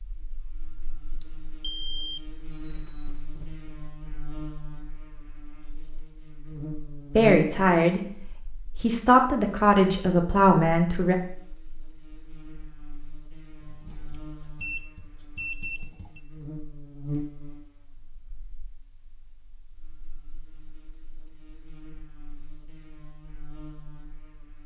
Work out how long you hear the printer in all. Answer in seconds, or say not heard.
not heard.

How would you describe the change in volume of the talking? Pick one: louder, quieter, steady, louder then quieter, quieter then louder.
quieter then louder.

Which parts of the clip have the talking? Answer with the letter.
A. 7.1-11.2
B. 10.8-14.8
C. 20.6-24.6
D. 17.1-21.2
A.